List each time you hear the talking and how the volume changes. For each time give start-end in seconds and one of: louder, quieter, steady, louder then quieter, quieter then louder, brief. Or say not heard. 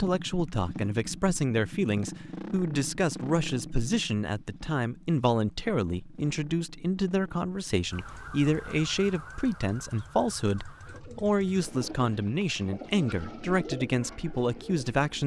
0.0-15.2 steady.